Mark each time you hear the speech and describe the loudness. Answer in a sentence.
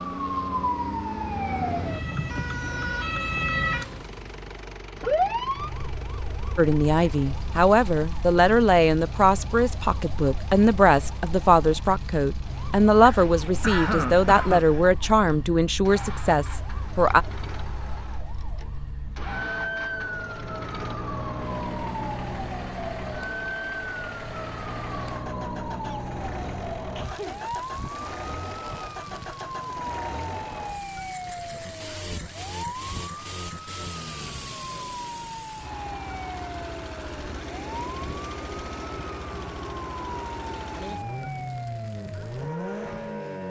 The speech can be heard from 6.5 to 17.2 s, at a steady volume.